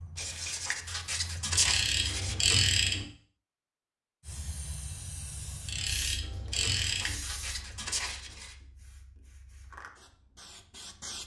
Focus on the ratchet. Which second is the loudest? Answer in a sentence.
The volume of the ratchet peaks at 3 seconds.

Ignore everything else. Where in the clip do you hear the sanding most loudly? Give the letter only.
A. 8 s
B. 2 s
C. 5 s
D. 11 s
B.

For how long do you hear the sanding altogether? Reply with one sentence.
You can hear the sanding for 4 seconds altogether.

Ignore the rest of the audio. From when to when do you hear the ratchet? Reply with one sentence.
The ratchet can be heard from 1.5 to 3.0 s and from 5.7 to 7.2 s.